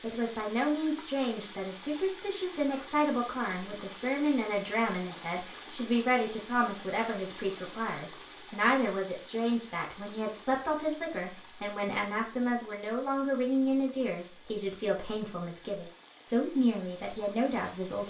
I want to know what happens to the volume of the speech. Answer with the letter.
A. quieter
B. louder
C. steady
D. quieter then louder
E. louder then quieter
C.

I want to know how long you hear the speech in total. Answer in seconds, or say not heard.
18 s.